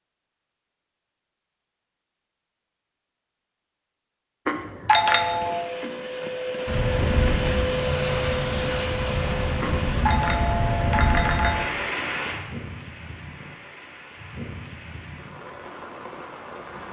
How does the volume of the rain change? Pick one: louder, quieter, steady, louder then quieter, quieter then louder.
quieter.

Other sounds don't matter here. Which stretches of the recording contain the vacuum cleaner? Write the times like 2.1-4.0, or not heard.
5.2-10.1.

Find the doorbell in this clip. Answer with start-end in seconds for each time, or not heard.
4.5-5.6, 9.6-11.7.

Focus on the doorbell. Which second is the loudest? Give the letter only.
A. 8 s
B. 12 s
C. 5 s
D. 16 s
C.